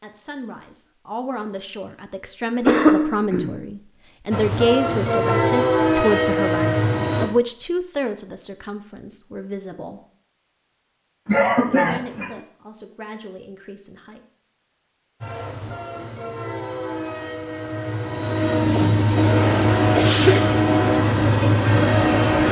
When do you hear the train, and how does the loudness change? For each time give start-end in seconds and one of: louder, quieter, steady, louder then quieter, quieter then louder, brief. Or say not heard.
4.3-7.2 brief
15.2-22.4 louder.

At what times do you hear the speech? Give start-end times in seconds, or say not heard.
0.0-10.1, 11.7-14.2.